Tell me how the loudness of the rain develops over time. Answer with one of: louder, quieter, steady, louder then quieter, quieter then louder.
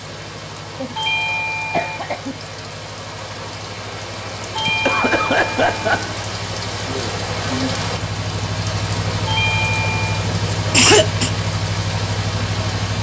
louder.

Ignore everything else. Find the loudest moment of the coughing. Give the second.
11 s.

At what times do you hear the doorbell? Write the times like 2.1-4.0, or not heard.
0.9-2.0, 4.5-6.0, 9.2-10.2.